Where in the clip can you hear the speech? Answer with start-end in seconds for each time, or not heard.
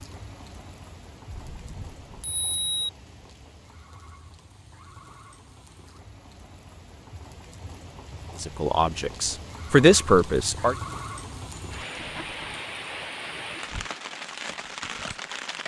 8.4-10.8.